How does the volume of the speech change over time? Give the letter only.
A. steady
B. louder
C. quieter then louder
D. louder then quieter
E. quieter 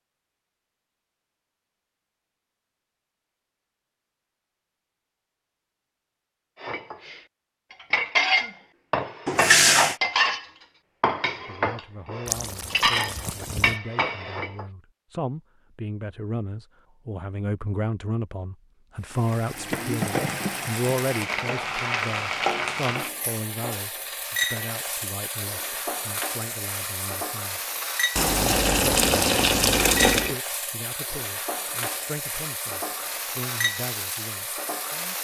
D.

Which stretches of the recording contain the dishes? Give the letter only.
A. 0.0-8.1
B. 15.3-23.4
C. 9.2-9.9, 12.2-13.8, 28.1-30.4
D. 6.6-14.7
D.